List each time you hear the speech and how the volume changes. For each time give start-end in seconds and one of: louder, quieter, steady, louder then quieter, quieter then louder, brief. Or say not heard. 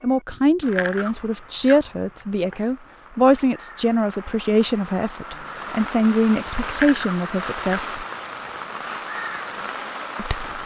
0.0-8.1 steady
10.2-10.6 brief.